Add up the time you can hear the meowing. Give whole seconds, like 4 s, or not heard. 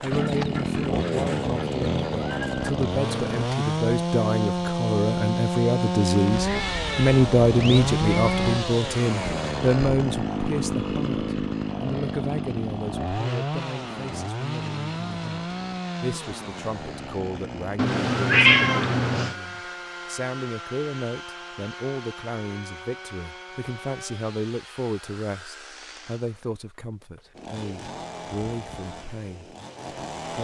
4 s.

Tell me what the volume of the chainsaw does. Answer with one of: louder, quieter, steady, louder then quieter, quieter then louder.
quieter.